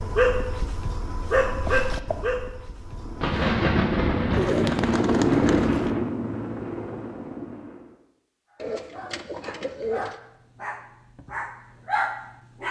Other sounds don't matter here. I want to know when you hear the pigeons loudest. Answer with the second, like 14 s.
5 s.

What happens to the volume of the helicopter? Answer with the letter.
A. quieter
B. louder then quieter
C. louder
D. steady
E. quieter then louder
B.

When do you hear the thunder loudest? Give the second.
4 s.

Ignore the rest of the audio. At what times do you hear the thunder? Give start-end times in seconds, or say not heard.
3.2-6.0.